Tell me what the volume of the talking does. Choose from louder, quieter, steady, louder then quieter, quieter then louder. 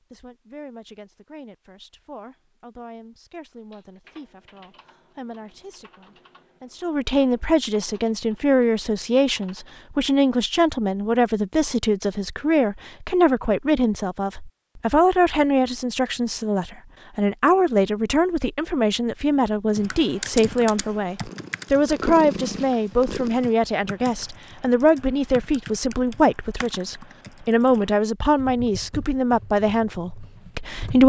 louder.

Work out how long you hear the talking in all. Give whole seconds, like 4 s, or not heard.
31 s.